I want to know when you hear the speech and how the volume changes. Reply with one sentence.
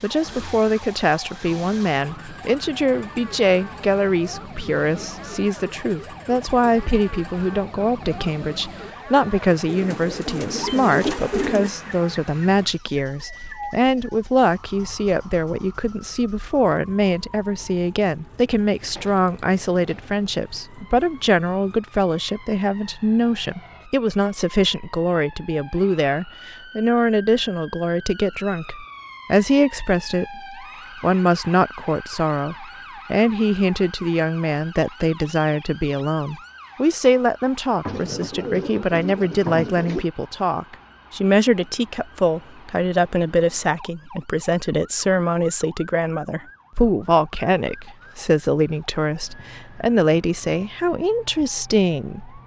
The speech can be heard from 0.0 to 52.4 s, at a steady volume.